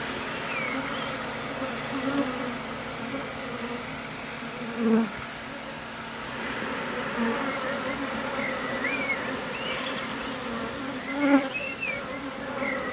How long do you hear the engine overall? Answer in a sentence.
The engine can be heard for 13 seconds in total.